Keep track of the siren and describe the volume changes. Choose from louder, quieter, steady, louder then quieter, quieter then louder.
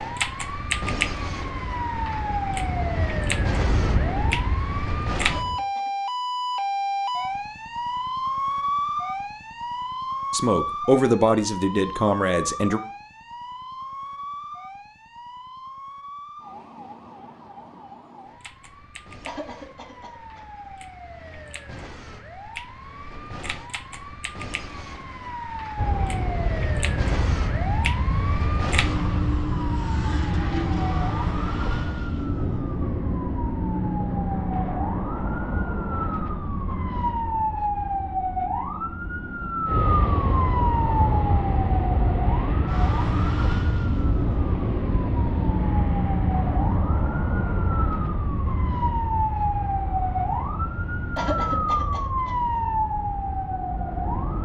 quieter then louder.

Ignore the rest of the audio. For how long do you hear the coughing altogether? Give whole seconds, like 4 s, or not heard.
4 s.